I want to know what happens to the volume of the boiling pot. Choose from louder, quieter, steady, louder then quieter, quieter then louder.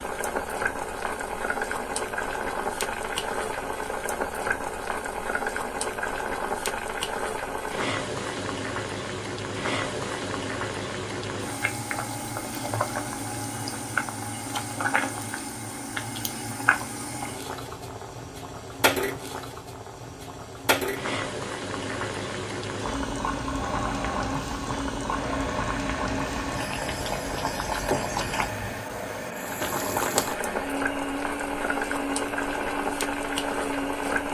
steady.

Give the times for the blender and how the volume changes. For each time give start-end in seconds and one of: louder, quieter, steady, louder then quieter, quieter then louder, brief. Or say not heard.
23.6-34.2 steady.